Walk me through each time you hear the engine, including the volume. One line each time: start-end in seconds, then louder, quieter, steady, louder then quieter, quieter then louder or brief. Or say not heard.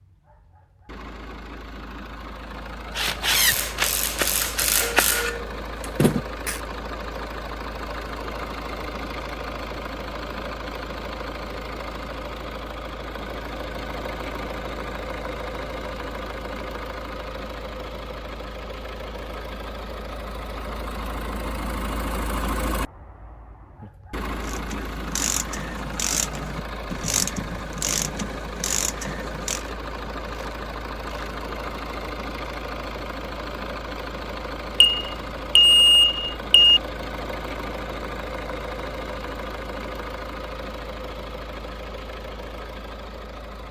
0.0-43.6 steady.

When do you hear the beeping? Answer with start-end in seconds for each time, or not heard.
34.8-36.8.